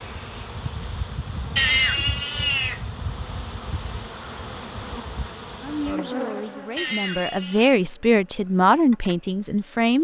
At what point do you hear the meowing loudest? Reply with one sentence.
The volume of the meowing peaks at 2 seconds.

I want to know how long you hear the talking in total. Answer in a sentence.
You can hear the talking for 4 seconds altogether.